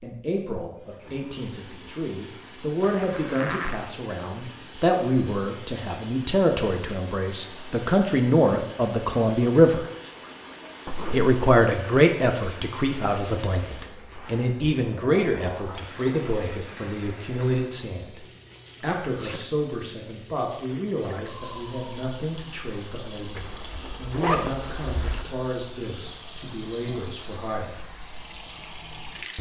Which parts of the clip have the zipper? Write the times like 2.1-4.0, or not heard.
2.8-3.9, 10.8-11.3, 23.4-25.2.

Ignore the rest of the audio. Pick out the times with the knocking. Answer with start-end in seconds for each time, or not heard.
not heard.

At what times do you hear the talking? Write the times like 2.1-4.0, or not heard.
0.0-9.8, 11.1-27.8.